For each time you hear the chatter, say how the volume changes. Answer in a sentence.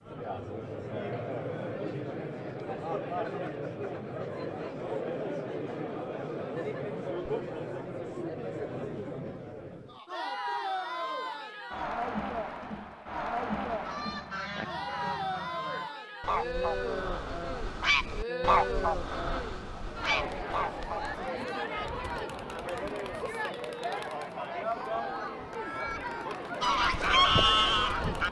You can hear the chatter from 0.0 to 28.2 s, at a steady volume.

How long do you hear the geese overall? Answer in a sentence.
The geese can be heard for 9 seconds in total.